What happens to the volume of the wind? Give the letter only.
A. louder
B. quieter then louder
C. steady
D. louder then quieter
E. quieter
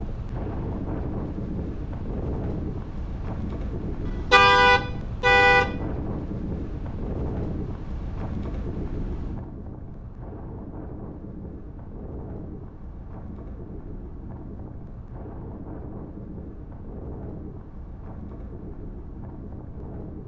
E.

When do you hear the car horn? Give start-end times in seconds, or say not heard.
4.0-5.7.